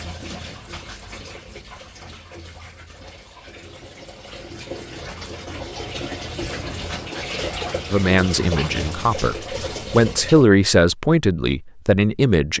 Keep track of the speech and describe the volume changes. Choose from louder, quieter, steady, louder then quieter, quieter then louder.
louder then quieter.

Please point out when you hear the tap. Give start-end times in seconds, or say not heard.
0.0-10.4.